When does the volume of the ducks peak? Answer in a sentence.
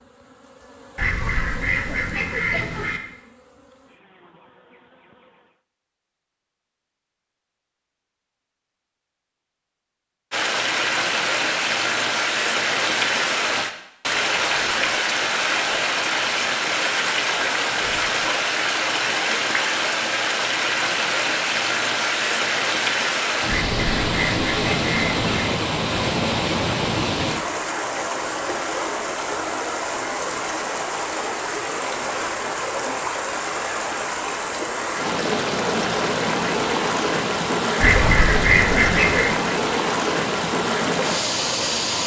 The volume of the ducks peaks at 39 seconds.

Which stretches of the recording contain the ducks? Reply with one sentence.
The ducks can be heard from 0.9 to 3.0 s, from 23.4 to 25.5 s and from 37.8 to 39.4 s.